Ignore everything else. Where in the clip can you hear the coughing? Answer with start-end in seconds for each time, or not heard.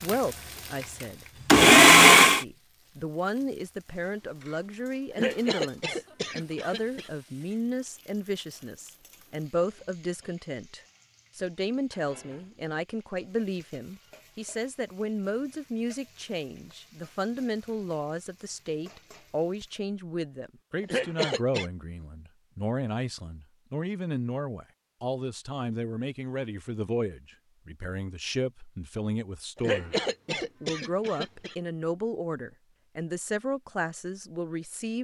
5.1-7.1, 20.8-21.7, 29.6-31.6.